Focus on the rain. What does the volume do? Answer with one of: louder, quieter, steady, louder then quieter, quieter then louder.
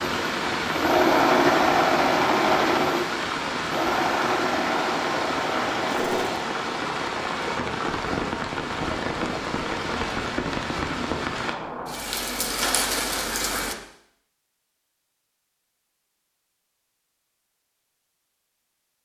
steady.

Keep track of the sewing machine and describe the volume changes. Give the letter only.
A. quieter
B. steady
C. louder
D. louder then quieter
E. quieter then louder
A.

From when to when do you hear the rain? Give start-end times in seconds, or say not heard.
0.0-13.8.